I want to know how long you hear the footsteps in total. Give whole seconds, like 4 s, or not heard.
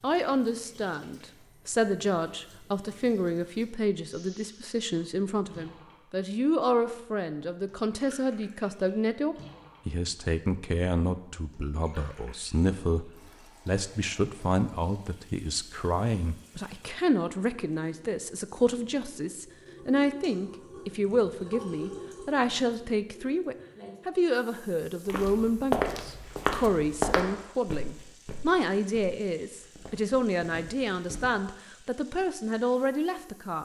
6 s.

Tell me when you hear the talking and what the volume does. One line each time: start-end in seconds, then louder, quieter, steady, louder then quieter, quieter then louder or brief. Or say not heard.
0.0-33.6 steady.